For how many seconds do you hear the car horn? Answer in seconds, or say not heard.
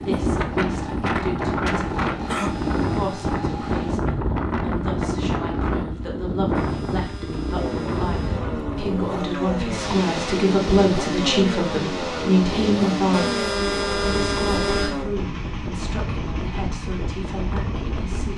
5 s.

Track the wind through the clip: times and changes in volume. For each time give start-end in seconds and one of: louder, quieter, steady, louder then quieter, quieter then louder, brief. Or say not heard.
0.0-18.3 quieter.